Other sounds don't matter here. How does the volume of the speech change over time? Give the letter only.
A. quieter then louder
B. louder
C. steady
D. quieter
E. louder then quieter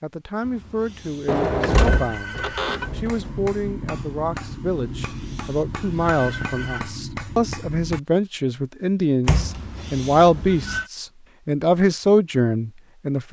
B.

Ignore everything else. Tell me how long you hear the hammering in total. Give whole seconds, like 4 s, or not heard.
5 s.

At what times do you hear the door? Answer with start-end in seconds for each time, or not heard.
1.2-3.2, 9.2-10.6.